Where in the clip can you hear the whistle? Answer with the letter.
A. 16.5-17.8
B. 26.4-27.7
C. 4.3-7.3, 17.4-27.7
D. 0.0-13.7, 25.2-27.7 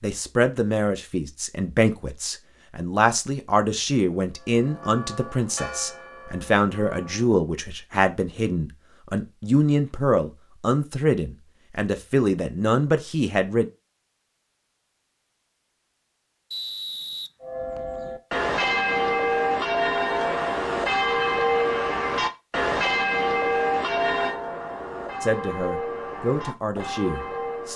A.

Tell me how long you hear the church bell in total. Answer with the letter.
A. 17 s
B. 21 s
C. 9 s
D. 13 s
D.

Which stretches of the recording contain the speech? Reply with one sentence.
The speech can be heard from 0.0 to 13.7 s and from 25.2 to 27.7 s.